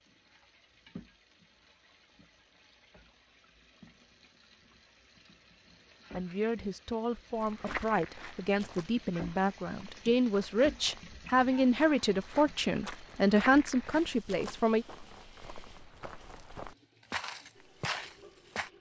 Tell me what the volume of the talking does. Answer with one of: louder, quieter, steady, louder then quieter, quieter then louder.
louder.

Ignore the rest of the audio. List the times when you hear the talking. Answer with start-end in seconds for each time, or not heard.
6.1-14.8.